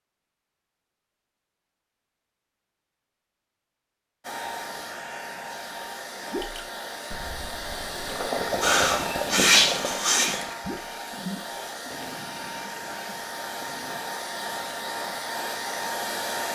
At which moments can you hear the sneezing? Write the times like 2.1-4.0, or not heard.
8.6-10.6.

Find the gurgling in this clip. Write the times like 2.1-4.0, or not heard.
6.3-14.1.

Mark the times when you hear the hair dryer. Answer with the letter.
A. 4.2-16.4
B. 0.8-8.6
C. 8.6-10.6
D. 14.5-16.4
A.